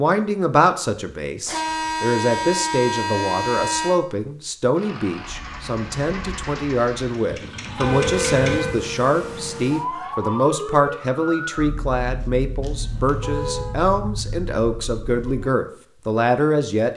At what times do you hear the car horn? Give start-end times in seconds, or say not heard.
1.4-4.0, 7.8-8.9, 12.6-13.8.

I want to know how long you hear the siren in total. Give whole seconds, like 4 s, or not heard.
8 s.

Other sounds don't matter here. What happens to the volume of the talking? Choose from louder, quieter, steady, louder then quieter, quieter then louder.
steady.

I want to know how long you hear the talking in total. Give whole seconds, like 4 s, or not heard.
17 s.